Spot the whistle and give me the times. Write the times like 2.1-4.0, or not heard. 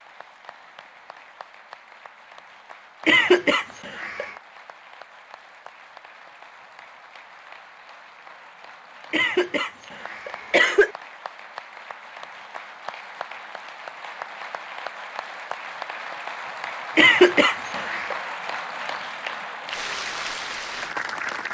not heard.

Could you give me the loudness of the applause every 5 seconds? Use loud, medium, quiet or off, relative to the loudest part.
quiet, quiet, medium, loud, loud.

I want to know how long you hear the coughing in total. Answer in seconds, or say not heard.
4 s.